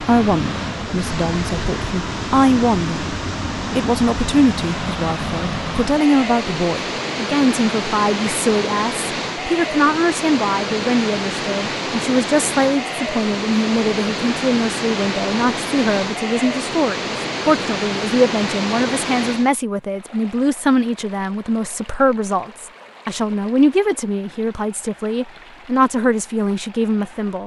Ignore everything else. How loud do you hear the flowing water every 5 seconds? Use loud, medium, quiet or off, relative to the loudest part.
loud, loud, loud, loud, quiet, quiet.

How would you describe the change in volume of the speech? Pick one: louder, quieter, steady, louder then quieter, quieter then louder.
steady.